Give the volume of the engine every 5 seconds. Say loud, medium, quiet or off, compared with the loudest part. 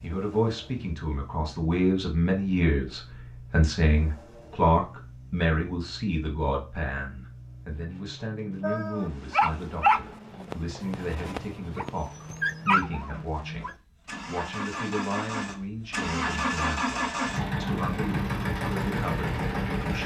quiet, quiet, medium, loud.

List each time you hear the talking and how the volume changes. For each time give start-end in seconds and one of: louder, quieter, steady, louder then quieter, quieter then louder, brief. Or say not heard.
0.0-20.0 quieter.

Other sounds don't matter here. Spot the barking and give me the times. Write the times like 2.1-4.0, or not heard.
8.6-13.8.